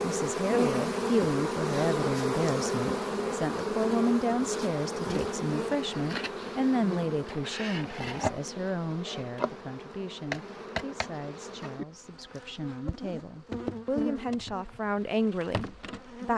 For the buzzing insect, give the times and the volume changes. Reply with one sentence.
You can hear the buzzing insect from 0.0 to 16.3 s, getting quieter.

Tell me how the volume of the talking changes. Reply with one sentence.
The volume of the talking goes down, then up.